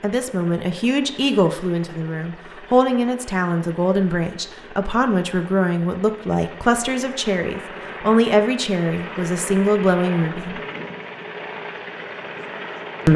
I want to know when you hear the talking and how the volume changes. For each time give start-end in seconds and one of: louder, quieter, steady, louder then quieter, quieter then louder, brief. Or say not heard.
0.0-10.6 steady.